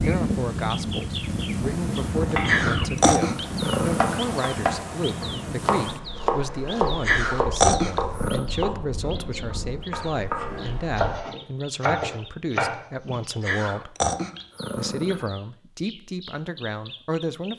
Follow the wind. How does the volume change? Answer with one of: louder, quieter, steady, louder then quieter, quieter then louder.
quieter.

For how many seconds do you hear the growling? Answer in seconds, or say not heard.
5 s.